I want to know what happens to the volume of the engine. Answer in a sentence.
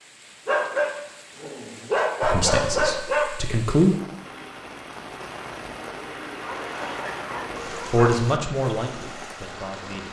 The volume of the engine goes up, then down.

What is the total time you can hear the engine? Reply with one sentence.
You can hear the engine for 6 seconds altogether.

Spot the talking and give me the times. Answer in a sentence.
You can hear the talking from 2.2 to 4.0 s and from 7.9 to 10.0 s.